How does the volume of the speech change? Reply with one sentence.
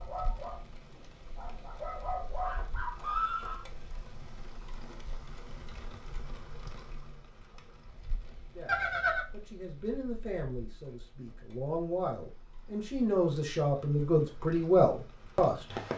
The volume of the speech goes up.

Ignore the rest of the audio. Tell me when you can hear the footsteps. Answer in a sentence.
The footsteps can't be heard in this clip.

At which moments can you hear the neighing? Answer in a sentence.
The neighing can be heard from 2.5 to 3.6 s and from 8.7 to 9.2 s.